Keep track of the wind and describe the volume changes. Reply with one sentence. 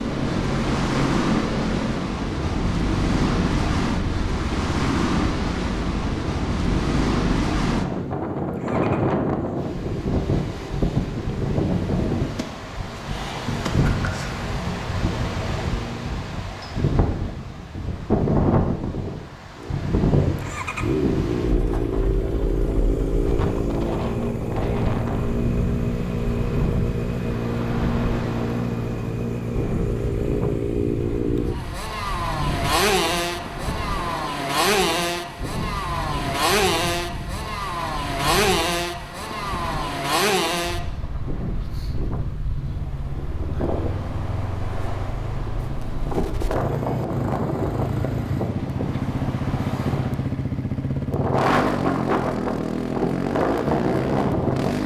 The volume of the wind goes down, then up.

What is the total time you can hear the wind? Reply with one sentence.
You can hear the wind for 55 seconds altogether.